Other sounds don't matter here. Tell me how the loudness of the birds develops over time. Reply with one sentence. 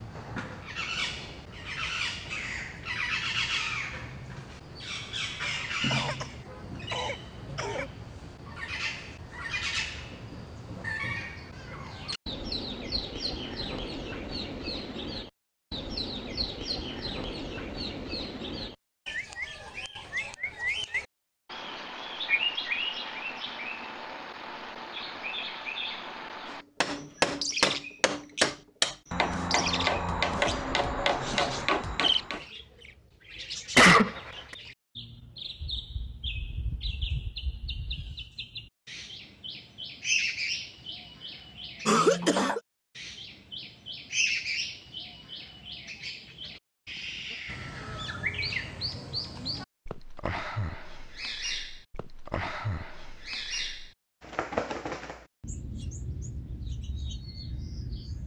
The volume of the birds stays about the same.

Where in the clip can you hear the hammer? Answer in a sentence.
The hammer can be heard from 26.8 to 32.5 s.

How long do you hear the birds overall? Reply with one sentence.
You can hear the birds for 58 seconds altogether.